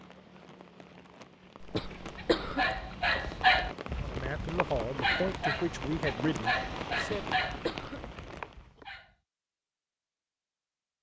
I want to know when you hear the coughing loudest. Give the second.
2 s.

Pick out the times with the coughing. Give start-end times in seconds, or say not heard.
1.6-2.6, 7.0-8.1.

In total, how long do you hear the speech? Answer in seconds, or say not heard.
3 s.